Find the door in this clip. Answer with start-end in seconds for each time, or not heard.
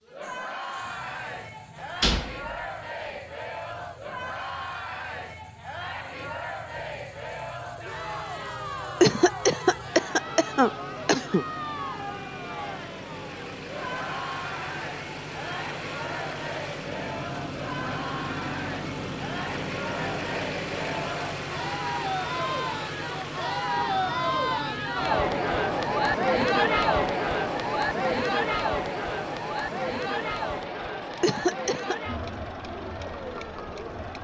1.8-3.1.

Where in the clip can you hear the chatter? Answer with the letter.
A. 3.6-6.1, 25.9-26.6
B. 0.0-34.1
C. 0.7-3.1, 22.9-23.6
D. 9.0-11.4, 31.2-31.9
B.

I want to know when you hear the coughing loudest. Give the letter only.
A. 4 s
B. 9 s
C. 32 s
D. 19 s
B.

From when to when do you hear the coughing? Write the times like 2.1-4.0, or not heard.
9.0-11.4, 31.2-31.9.